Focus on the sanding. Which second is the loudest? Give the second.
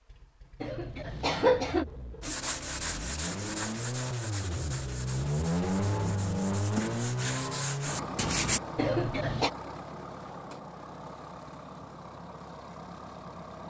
8 s.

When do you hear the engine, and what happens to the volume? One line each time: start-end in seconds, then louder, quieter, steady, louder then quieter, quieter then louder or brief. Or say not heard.
0.0-13.6 louder then quieter.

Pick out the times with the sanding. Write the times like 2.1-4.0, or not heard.
2.2-8.6.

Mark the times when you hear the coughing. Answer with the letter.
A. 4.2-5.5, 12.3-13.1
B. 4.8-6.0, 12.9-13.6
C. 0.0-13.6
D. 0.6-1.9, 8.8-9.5
D.